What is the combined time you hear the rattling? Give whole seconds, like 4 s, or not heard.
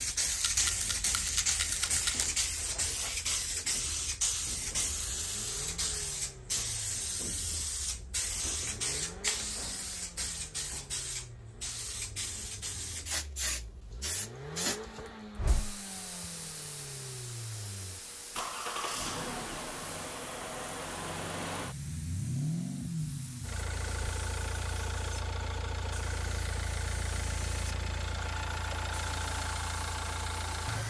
2 s.